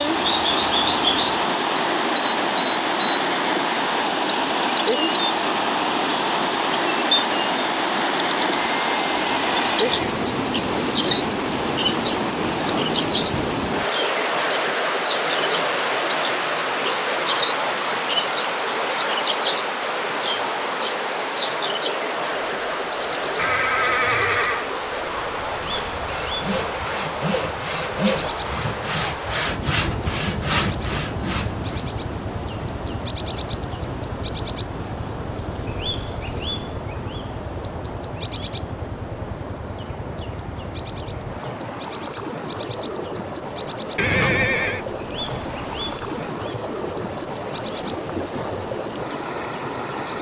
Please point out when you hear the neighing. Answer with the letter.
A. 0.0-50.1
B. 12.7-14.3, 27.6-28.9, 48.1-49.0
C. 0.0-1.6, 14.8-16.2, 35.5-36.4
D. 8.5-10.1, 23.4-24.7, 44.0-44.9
D.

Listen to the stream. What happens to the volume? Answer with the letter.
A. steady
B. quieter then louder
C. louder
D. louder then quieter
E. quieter
E.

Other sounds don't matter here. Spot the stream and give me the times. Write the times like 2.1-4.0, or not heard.
0.0-50.1.